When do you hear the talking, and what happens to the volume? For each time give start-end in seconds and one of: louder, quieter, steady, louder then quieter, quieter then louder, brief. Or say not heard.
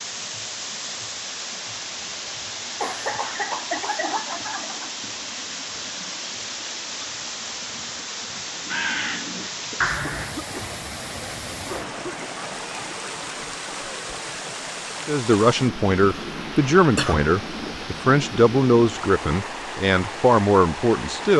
15.1-21.3 steady.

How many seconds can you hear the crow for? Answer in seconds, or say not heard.
2 s.